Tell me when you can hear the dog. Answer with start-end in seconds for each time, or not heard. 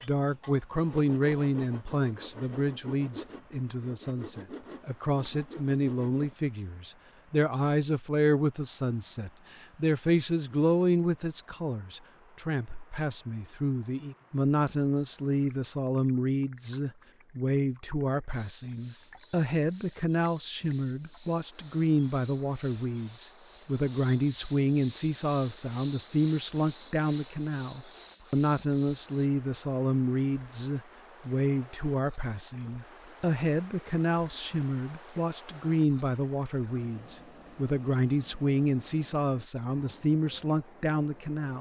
not heard.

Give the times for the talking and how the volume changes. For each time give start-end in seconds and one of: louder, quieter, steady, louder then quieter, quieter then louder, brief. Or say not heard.
0.0-41.5 steady.